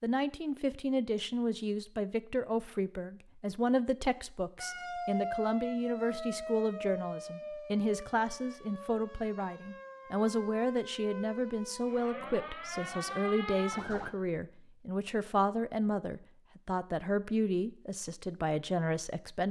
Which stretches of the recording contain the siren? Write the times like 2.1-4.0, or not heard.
4.5-14.2.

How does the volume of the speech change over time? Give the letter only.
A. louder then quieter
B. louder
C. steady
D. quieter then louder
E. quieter
C.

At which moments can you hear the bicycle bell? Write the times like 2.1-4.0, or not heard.
not heard.